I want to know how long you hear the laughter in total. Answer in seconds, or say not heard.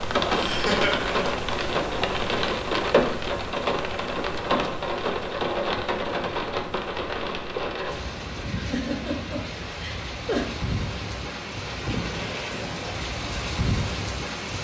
3 s.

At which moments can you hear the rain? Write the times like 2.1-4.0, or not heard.
0.0-14.5.